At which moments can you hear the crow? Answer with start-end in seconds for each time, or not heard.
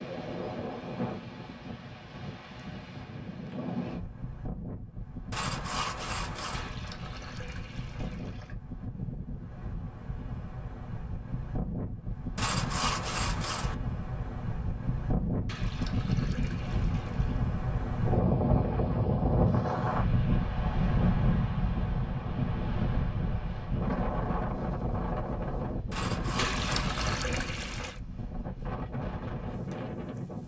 not heard.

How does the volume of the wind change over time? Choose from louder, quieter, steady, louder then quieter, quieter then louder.
louder then quieter.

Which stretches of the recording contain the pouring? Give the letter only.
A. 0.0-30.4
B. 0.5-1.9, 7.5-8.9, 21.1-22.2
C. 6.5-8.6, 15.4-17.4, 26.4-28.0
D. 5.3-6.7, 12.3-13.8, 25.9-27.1
C.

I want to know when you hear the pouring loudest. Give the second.
27 s.